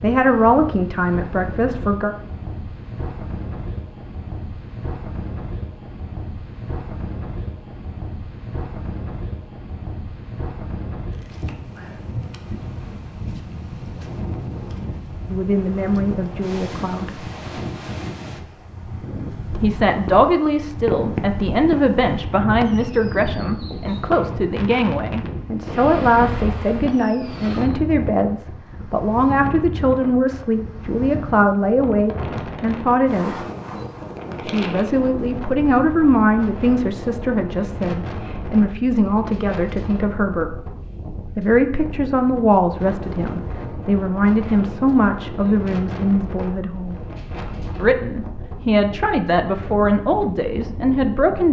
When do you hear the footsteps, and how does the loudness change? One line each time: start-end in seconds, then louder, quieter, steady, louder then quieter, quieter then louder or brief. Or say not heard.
not heard.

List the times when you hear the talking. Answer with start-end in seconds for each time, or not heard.
0.0-2.1, 15.2-17.2, 19.6-33.4, 34.4-40.5, 41.4-47.0, 47.8-51.4.